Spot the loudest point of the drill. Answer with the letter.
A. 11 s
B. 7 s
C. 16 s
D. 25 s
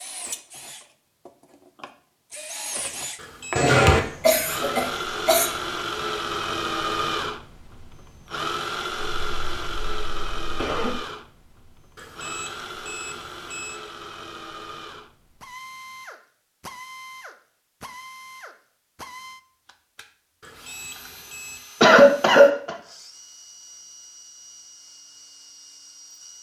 B.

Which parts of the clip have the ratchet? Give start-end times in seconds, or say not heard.
not heard.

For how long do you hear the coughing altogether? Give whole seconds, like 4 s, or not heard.
5 s.